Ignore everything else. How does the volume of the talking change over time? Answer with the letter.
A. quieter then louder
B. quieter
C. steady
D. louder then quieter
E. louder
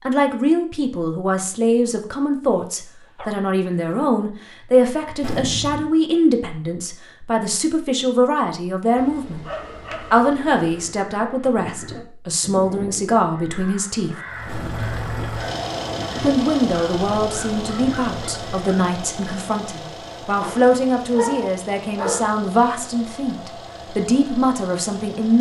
C.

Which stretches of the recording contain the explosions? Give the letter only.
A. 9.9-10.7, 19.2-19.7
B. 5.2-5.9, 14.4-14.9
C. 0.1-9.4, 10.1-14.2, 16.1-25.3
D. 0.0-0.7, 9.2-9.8
B.